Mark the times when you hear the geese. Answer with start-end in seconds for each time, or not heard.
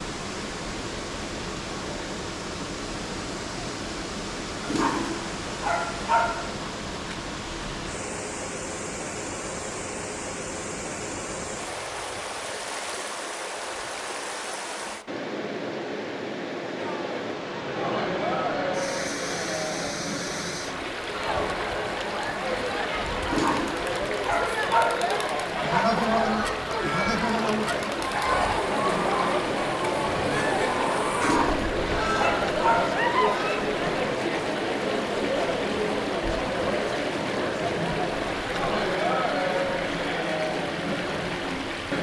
25.6-33.6.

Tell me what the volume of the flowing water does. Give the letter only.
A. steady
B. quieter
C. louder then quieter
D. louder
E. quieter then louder
A.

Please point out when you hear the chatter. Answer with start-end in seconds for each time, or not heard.
16.8-41.9.